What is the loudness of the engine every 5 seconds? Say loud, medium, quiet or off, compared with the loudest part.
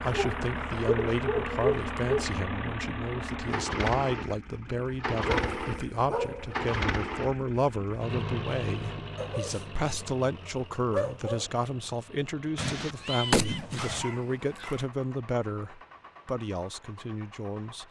loud, loud, quiet, quiet.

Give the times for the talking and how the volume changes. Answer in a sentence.
The talking can be heard from 0.0 to 17.8 s, at a steady volume.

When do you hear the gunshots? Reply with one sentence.
The gunshots can be heard from 12.6 to 14.1 s.